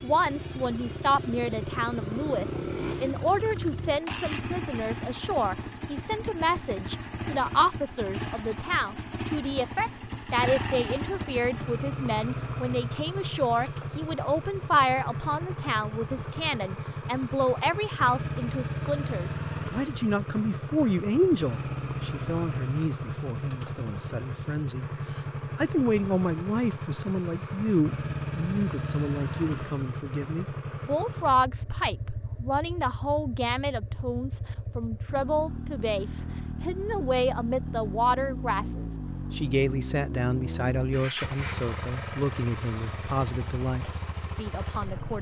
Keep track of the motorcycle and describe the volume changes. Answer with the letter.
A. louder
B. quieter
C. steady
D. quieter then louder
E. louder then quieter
C.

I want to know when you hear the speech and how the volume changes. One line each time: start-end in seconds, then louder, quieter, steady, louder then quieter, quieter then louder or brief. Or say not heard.
0.0-45.1 steady.